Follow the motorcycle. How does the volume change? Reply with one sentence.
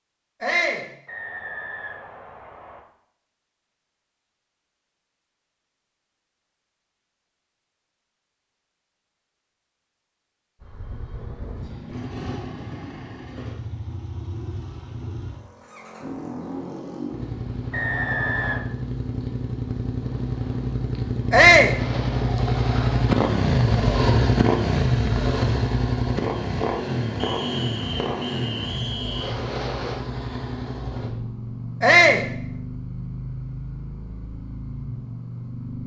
The loudness of the motorcycle goes up, then down.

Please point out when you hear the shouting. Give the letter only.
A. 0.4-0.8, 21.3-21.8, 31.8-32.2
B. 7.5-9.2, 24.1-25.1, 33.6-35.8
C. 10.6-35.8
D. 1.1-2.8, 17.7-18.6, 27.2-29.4
A.